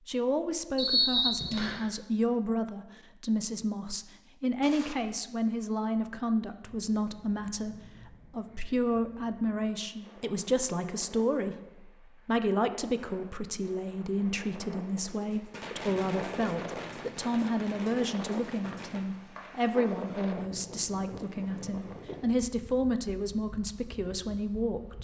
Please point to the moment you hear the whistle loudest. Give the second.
1 s.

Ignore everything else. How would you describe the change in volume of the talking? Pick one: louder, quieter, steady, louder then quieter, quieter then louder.
steady.